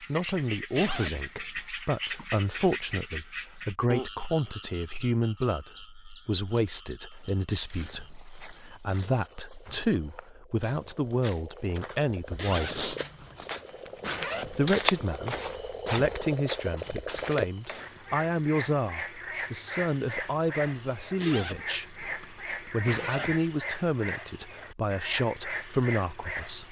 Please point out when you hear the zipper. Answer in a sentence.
The zipper can be heard from 0.8 to 1.6 s, from 12.3 to 14.7 s and from 21.2 to 23.4 s.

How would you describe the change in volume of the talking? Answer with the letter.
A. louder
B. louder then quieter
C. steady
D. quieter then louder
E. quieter
C.